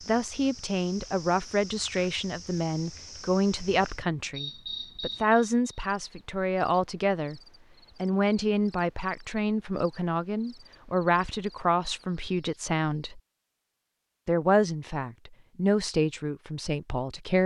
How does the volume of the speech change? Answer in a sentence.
The loudness of the speech stays about the same.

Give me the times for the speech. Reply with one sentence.
You can hear the speech from 0.1 to 7.3 s, from 8.0 to 13.2 s and from 14.2 to 17.4 s.